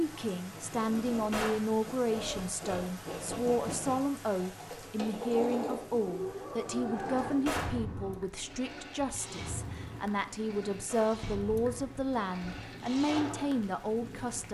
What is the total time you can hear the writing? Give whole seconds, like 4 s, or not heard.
not heard.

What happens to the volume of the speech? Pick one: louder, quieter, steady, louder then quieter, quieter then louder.
steady.